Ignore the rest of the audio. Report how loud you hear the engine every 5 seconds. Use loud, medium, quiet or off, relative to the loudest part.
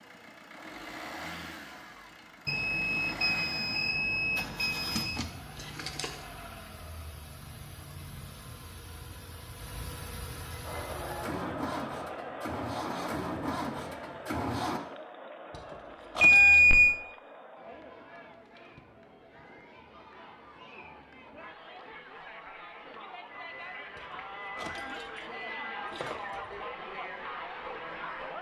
medium, medium, loud, off, off, off.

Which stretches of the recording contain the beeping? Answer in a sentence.
The beeping can be heard from 2.5 to 5.2 s, from 16.2 to 16.9 s and from 23.3 to 25.8 s.